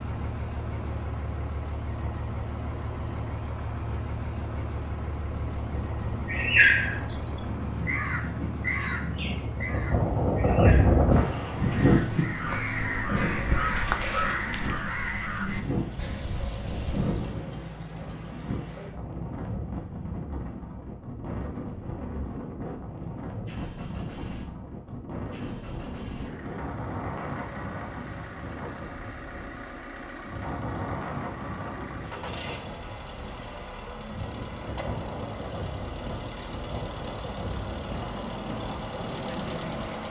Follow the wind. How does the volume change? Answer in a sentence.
The volume of the wind goes up, then down.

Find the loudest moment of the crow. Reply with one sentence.
The volume of the crow peaks at 7 seconds.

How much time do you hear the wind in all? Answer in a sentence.
You can hear the wind for 40 seconds altogether.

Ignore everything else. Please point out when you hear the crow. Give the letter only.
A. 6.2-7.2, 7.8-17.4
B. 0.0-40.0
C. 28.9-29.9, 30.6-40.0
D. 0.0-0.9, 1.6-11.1
A.